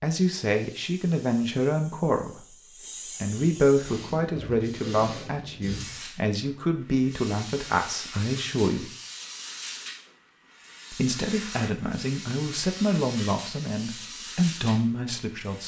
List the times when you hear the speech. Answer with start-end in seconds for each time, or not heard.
0.0-8.9, 10.9-15.6.